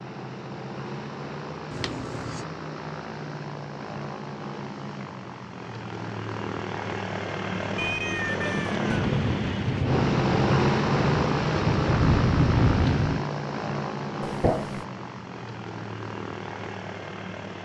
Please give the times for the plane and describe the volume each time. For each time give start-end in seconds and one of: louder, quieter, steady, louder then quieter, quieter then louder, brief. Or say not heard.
0.0-17.6 louder then quieter.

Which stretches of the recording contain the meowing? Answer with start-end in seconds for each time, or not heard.
1.7-2.5, 7.8-8.9, 14.2-14.8.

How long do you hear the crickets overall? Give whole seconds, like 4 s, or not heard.
not heard.